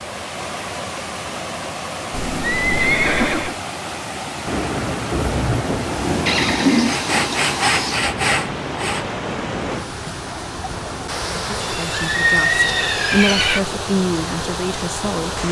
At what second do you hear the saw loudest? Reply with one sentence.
The loudest moment of the saw is at 8 seconds.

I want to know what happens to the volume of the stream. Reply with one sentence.
The volume of the stream stays about the same.